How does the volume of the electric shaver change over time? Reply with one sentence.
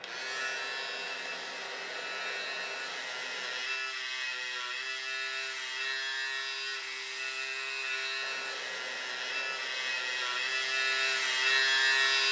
The volume of the electric shaver goes up.